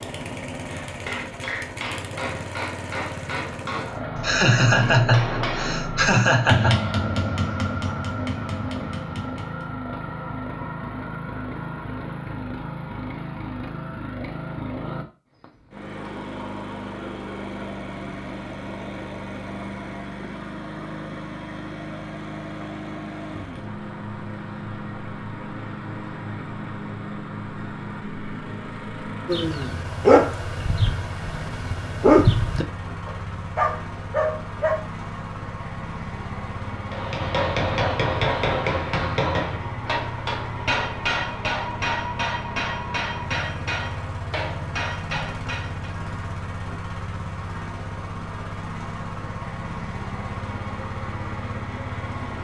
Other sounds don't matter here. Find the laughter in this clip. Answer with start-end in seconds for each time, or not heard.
4.2-6.8.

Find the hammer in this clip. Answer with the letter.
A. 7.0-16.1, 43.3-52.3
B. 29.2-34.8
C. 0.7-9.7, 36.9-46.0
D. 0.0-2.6
C.